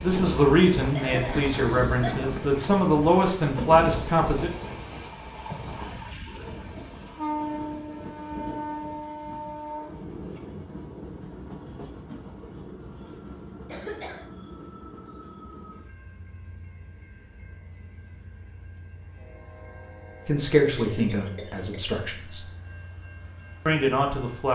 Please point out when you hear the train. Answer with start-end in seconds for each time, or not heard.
0.0-24.5.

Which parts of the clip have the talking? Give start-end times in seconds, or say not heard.
0.0-4.5, 20.2-22.4, 23.6-24.5.